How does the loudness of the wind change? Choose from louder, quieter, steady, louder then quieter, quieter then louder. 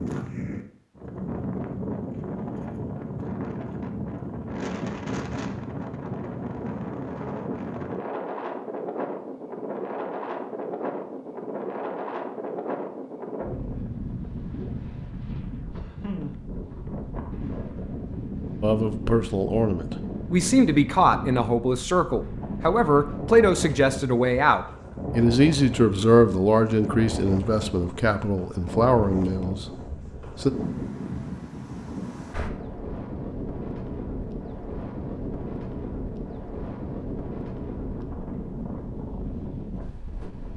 steady.